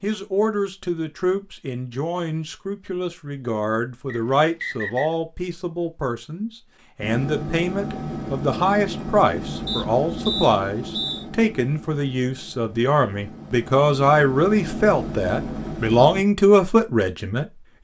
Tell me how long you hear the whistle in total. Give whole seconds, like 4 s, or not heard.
3 s.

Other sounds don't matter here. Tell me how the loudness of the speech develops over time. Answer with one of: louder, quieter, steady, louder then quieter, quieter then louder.
louder.